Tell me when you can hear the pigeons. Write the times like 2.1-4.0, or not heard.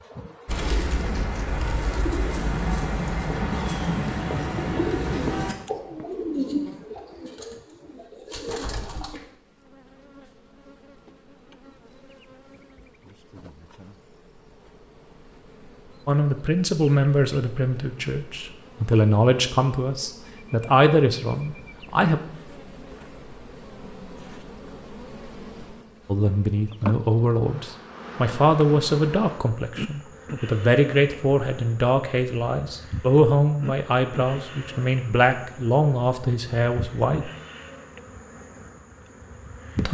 0.5-9.2.